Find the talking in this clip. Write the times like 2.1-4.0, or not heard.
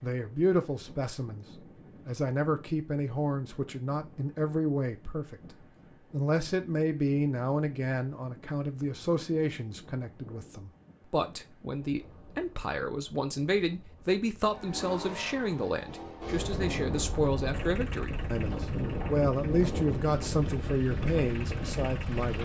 0.0-22.4.